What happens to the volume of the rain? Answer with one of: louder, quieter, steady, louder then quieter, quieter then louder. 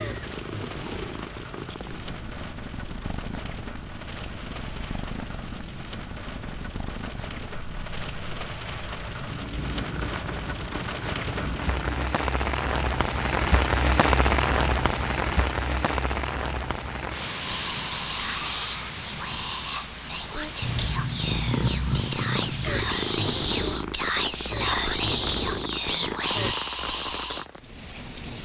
louder then quieter.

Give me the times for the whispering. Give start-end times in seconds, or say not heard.
17.4-27.4.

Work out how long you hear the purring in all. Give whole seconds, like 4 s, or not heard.
18 s.